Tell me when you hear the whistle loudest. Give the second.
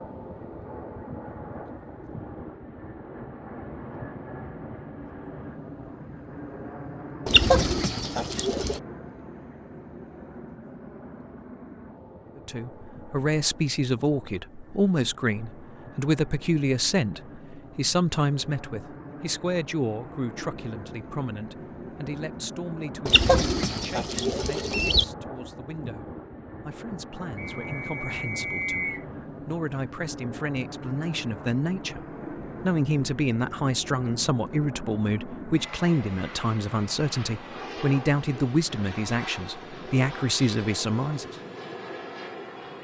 29 s.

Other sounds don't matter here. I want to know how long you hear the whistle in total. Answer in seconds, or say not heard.
2 s.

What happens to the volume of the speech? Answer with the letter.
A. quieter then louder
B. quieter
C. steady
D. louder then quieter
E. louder
A.